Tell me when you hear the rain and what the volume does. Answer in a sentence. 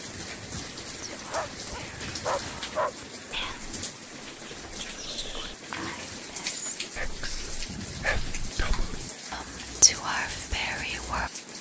The rain can be heard from 0.0 to 11.5 s, at a steady volume.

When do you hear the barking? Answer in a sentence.
You can hear the barking from 1.1 to 3.0 s and from 7.7 to 9.2 s.